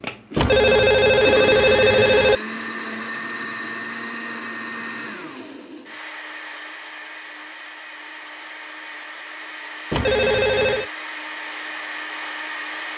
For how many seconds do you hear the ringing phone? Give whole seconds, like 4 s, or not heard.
3 s.